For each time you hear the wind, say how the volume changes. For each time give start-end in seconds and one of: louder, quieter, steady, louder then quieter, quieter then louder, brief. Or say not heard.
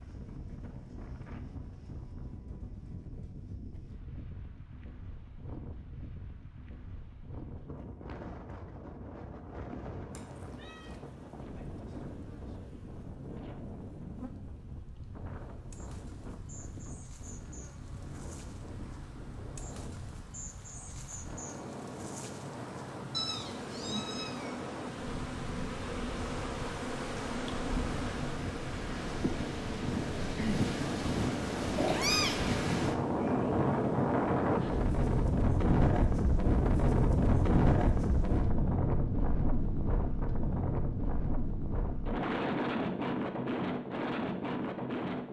0.0-45.2 louder.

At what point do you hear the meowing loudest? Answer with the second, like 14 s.
32 s.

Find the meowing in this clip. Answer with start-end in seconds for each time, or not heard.
10.2-10.9, 23.1-24.6, 31.8-32.4.